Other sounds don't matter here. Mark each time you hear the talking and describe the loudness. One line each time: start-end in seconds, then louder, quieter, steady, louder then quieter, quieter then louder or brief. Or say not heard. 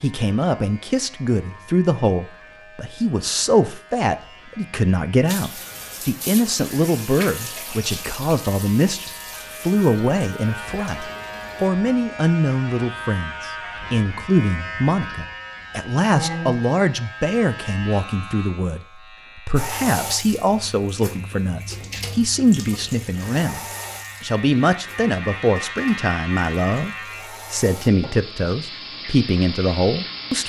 0.0-30.4 steady.